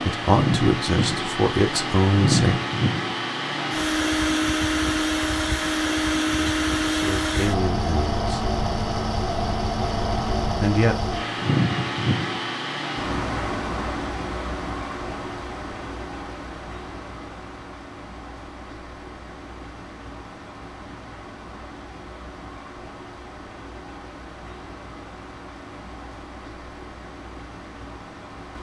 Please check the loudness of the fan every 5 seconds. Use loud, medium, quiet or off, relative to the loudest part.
loud, loud, loud, quiet, quiet, quiet.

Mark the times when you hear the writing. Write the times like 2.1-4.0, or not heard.
not heard.